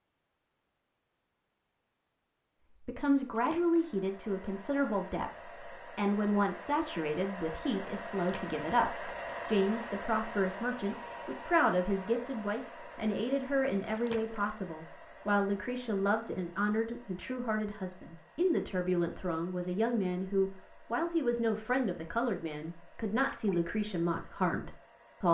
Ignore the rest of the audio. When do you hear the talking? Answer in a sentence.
You can hear the talking from 2.9 to 25.3 s.